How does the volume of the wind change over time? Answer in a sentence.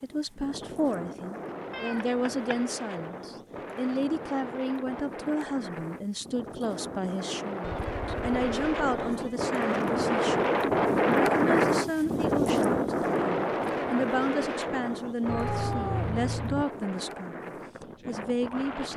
The volume of the wind goes up, then down.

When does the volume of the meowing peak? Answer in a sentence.
The volume of the meowing peaks at 16 seconds.